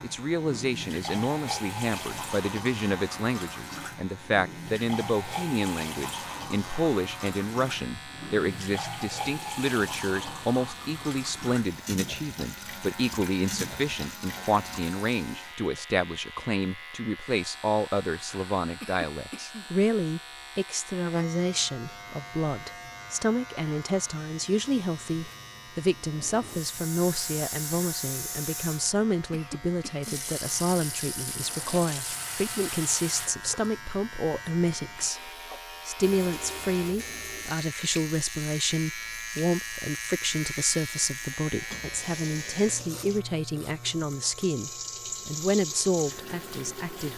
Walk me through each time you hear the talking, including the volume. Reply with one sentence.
The talking can be heard from 0.0 to 47.1 s, at a steady volume.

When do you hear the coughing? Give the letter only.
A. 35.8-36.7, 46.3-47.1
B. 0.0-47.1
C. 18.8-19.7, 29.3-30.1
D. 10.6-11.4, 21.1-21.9
C.